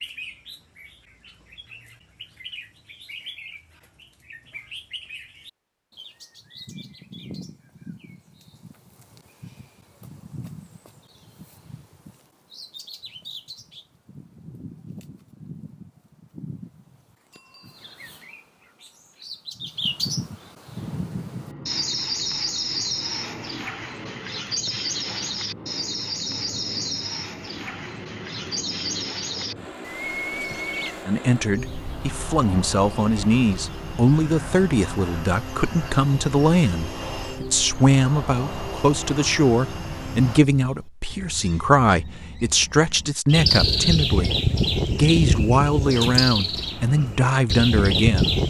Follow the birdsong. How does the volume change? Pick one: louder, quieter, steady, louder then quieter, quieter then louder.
louder.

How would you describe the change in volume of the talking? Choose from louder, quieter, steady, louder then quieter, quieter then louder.
steady.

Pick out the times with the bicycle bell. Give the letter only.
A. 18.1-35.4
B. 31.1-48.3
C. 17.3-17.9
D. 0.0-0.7
C.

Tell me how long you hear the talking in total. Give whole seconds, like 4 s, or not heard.
17 s.